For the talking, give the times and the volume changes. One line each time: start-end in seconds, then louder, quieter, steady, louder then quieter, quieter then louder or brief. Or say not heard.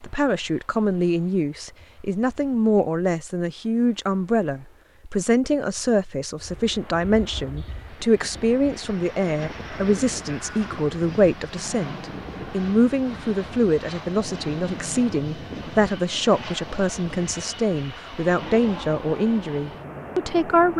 0.0-20.7 steady.